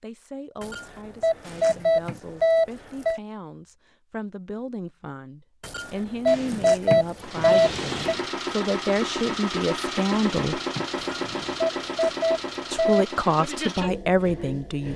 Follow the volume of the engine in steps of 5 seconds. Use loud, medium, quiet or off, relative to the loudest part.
off, loud, loud.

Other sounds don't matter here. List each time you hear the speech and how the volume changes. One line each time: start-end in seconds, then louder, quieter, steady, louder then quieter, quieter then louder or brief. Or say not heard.
0.0-10.6 louder
12.7-14.9 brief.